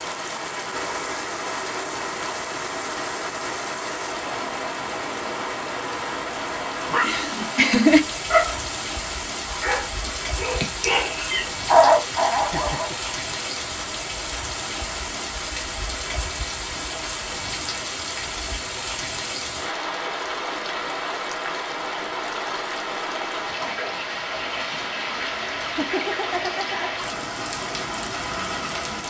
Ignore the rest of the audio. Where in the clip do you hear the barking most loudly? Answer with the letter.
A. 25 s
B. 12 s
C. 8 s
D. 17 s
B.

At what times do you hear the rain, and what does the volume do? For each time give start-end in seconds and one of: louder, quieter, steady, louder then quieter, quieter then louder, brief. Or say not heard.
0.0-29.0 steady.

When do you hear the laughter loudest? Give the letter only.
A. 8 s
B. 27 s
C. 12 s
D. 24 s
A.